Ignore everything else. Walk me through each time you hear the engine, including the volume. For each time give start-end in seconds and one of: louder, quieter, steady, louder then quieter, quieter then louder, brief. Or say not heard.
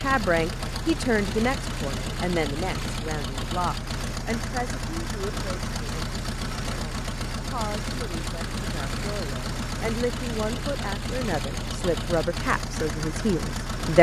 0.0-13.9 steady.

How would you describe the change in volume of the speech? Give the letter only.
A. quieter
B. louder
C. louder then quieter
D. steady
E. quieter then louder
E.